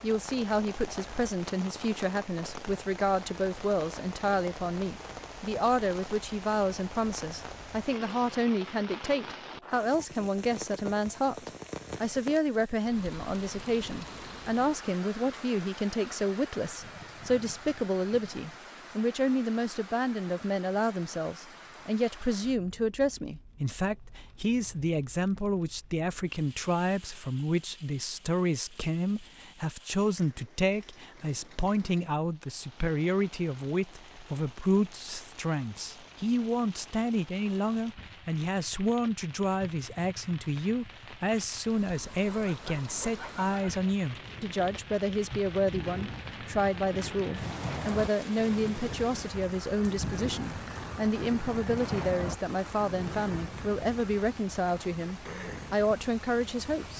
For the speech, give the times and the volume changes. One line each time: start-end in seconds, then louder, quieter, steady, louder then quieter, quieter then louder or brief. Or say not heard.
0.0-56.9 steady.